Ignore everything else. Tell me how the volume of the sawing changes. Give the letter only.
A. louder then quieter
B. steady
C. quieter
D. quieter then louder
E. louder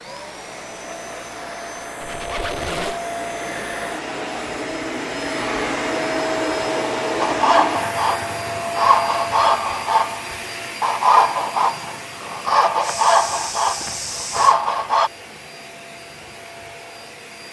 B.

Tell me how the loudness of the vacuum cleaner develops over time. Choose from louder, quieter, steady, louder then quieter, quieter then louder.
louder then quieter.